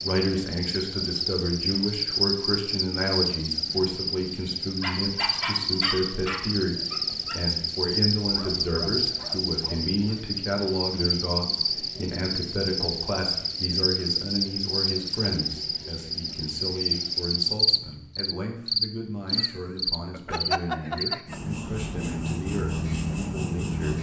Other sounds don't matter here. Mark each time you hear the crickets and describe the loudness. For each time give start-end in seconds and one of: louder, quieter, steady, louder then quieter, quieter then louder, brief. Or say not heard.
0.0-23.9 steady.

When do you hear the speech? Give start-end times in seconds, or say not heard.
0.0-23.9.